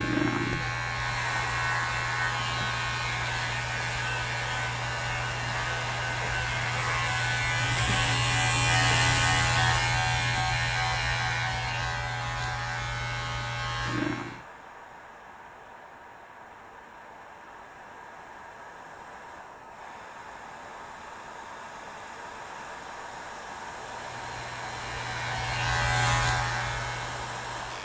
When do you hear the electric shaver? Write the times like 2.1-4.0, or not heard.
0.0-14.4, 23.9-27.8.